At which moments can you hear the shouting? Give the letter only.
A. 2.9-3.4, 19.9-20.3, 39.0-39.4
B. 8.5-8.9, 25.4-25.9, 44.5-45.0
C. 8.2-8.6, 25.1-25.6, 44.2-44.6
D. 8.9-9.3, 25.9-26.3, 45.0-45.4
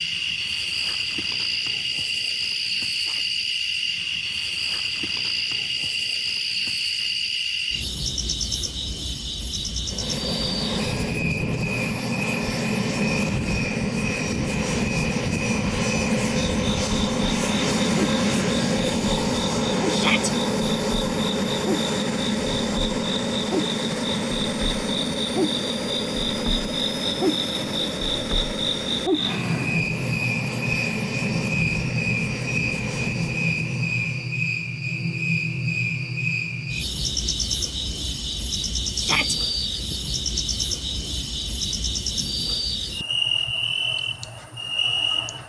A.